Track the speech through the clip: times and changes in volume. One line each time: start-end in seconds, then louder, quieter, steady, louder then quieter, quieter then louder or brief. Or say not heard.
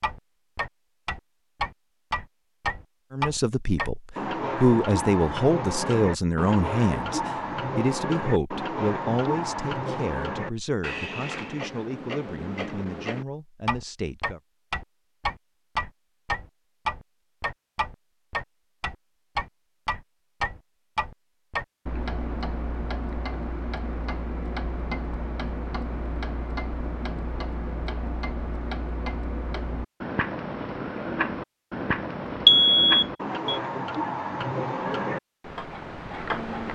3.1-14.4 quieter.